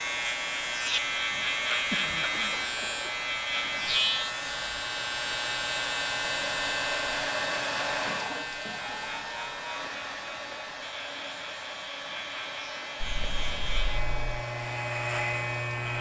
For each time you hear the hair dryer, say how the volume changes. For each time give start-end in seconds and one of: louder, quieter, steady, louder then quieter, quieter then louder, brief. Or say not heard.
0.0-15.9 louder then quieter.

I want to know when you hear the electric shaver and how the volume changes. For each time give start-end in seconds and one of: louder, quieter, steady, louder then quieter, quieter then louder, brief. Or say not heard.
0.0-15.9 quieter then louder.